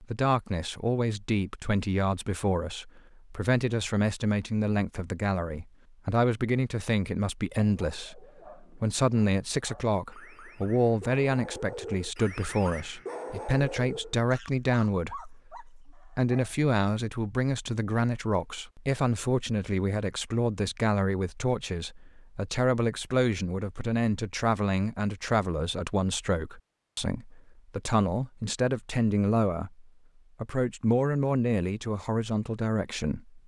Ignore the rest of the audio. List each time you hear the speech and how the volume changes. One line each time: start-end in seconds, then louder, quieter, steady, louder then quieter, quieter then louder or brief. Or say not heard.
0.0-33.4 steady.